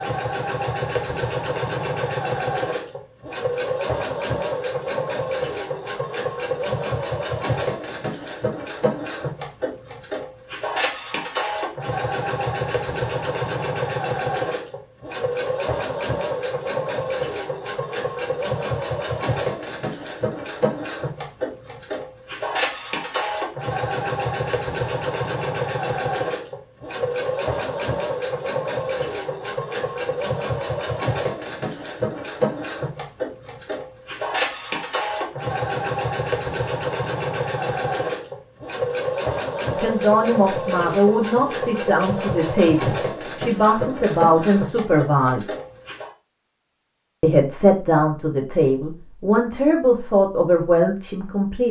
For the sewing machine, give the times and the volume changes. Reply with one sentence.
The sewing machine can be heard from 0.0 to 46.1 s, at a steady volume.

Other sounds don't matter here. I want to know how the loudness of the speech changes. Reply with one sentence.
The loudness of the speech stays about the same.